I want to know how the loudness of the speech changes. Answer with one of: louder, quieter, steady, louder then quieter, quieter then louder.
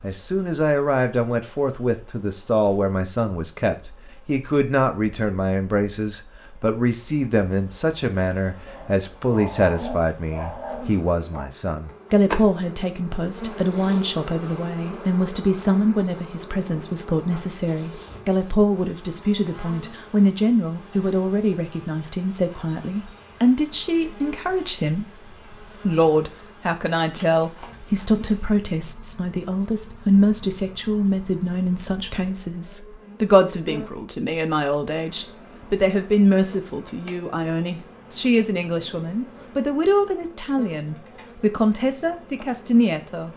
steady.